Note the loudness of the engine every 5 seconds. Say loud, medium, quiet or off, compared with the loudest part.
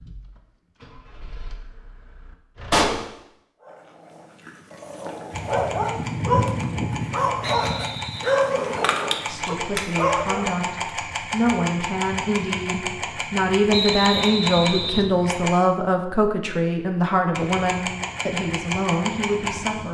quiet, loud, loud, loud.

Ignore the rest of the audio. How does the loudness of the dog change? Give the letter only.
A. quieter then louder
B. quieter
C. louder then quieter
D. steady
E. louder
E.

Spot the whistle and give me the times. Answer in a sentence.
You can hear the whistle from 7.4 to 8.4 s and from 13.7 to 15.1 s.